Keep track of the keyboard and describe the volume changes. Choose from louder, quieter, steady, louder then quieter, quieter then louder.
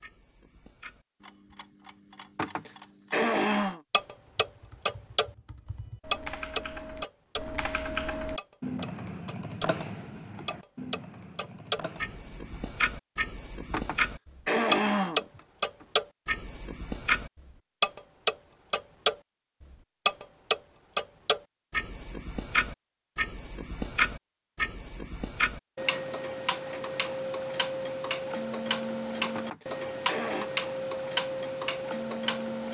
louder then quieter.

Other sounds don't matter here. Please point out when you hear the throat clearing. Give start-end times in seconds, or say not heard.
2.4-3.8, 13.7-15.8, 29.4-30.5.